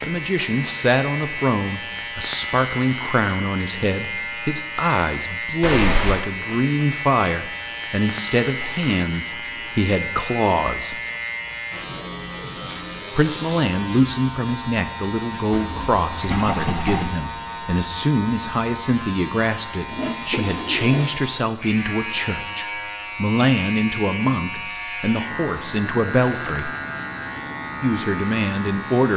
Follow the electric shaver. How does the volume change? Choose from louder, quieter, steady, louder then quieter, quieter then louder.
steady.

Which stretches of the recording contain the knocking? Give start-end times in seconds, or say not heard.
not heard.